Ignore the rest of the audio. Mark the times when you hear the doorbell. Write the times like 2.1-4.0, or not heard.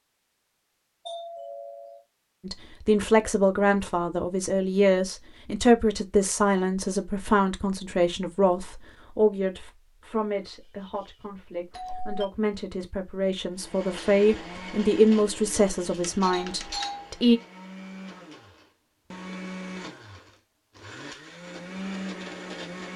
1.1-2.0, 10.4-12.2, 16.0-17.1.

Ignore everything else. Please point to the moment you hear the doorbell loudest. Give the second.
17 s.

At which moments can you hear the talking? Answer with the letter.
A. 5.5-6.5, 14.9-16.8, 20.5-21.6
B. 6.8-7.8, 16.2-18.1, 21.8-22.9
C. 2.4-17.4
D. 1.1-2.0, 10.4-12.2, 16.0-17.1
C.